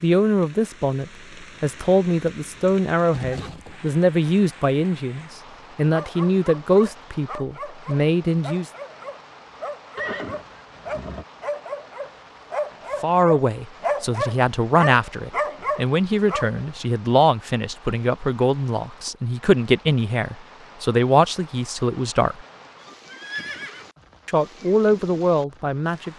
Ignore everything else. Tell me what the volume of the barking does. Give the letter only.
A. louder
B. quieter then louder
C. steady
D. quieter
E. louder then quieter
A.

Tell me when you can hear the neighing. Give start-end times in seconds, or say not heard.
3.1-3.8, 9.9-11.2, 23.1-23.9.